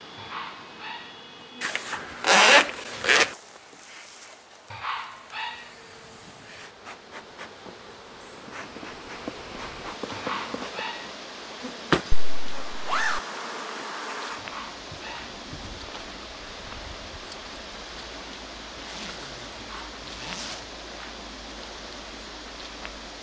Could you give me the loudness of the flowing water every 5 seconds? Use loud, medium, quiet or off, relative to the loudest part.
medium, medium, loud, loud, loud.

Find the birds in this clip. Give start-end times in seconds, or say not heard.
not heard.